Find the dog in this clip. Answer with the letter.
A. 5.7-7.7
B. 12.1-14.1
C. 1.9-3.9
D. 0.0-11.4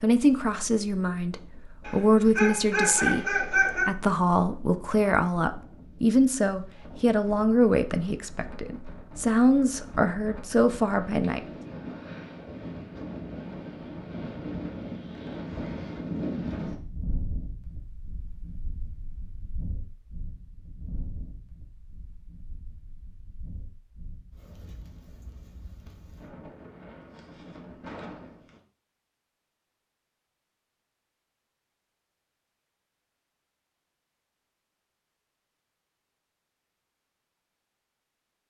C.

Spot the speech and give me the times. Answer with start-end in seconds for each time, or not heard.
0.0-11.4.